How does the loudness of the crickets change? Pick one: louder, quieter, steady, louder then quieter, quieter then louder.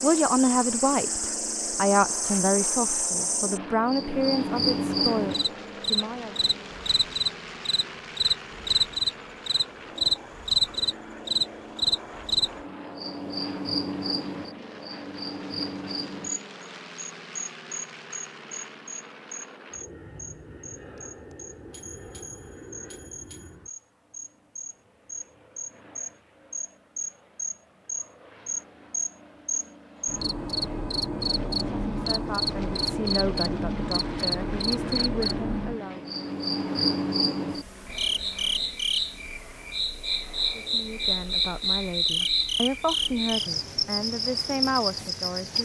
quieter then louder.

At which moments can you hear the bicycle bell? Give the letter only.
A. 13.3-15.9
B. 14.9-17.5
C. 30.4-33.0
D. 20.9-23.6
D.